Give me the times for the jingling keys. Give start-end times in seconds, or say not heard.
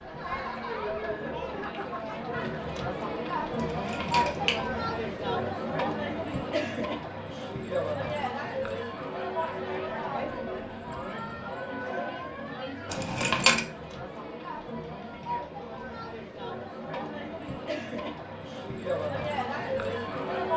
3.9-4.5, 12.9-13.6.